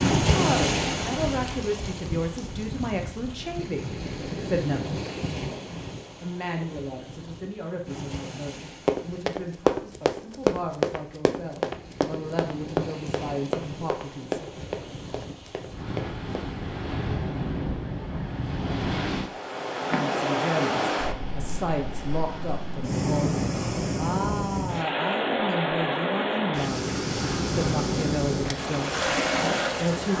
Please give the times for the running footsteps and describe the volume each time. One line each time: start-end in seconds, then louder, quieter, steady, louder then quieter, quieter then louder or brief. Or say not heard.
8.8-16.4 quieter.